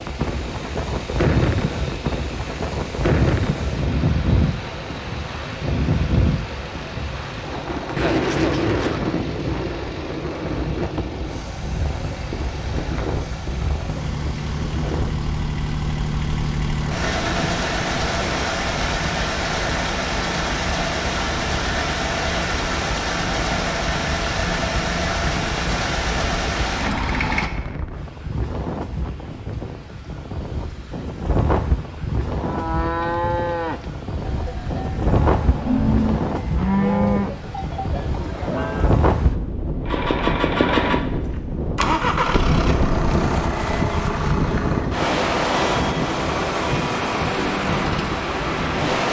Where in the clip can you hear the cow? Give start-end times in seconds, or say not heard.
32.4-39.0.